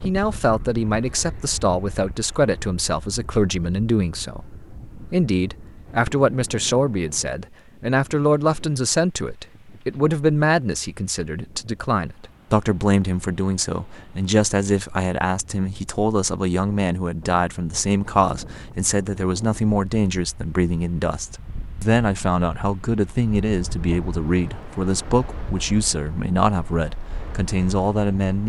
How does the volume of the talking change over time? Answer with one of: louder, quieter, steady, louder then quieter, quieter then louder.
steady.